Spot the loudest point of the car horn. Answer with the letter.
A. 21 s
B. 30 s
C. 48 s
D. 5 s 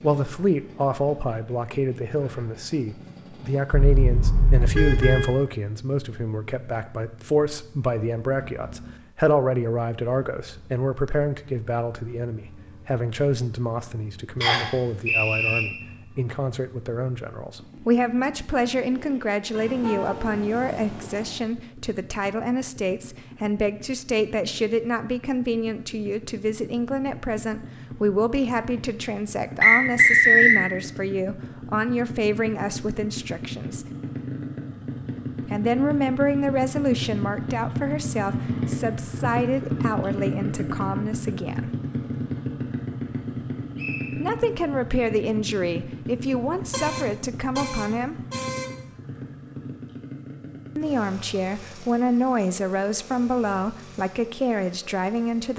D.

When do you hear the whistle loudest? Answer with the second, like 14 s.
30 s.